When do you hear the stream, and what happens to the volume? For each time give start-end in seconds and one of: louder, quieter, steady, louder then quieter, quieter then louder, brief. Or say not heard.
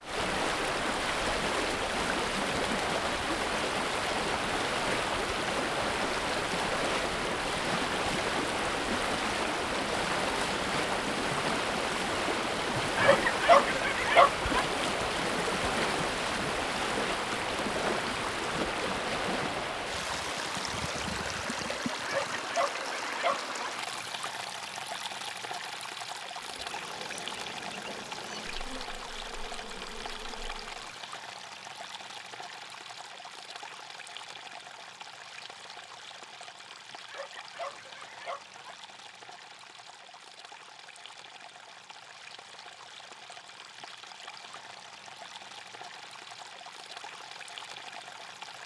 0.0-48.6 quieter.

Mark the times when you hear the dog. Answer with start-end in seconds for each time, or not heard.
12.9-14.7, 22.1-23.6, 37.0-38.8.